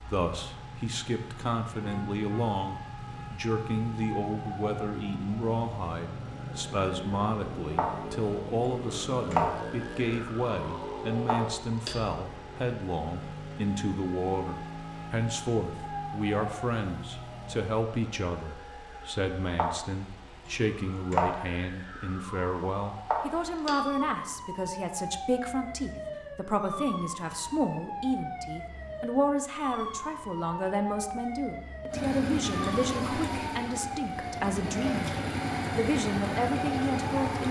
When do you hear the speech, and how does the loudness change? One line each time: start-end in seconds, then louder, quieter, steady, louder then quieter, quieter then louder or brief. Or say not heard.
0.0-37.4 steady.